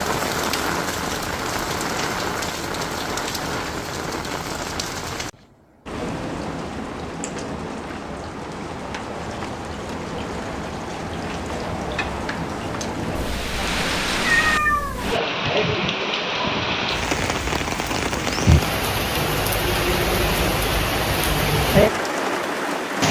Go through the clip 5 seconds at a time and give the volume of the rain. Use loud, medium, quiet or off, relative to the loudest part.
medium, medium, medium, loud, loud.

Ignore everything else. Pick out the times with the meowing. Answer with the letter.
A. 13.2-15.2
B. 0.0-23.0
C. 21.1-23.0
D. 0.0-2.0
A.